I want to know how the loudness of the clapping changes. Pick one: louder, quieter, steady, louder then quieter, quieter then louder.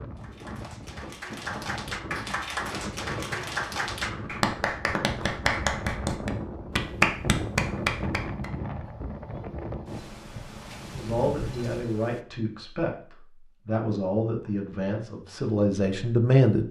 louder.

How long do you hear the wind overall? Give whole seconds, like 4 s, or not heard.
12 s.